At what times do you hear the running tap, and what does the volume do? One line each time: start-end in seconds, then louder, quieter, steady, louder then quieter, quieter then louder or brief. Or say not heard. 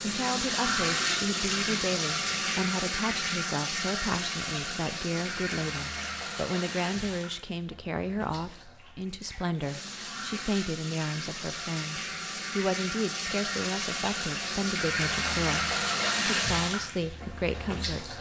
0.0-18.1 quieter then louder.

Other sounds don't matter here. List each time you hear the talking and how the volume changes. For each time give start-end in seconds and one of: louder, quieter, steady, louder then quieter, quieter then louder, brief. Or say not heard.
0.0-18.1 steady.